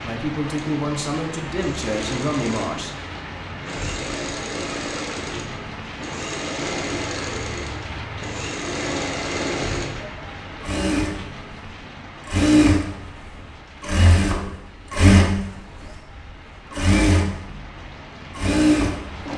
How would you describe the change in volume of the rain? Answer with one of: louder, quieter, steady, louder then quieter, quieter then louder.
quieter.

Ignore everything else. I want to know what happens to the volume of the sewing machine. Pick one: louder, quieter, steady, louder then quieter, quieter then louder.
louder.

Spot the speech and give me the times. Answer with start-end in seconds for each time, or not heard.
0.0-2.9.